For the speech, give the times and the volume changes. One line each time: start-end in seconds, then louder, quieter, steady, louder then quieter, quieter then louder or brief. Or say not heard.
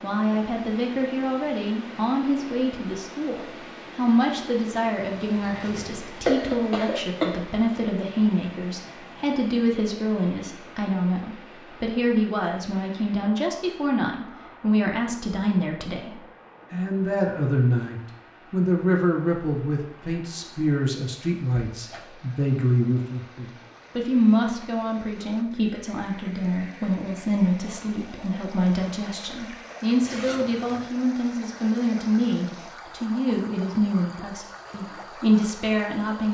0.0-36.2 steady.